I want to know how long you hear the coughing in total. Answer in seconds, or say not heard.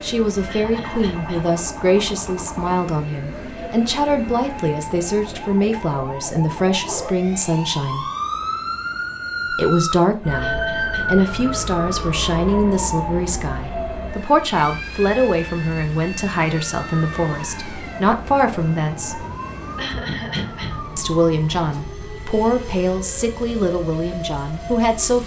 3 s.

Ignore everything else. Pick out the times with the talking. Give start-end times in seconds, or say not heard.
0.0-8.1, 9.5-19.2, 20.9-25.2.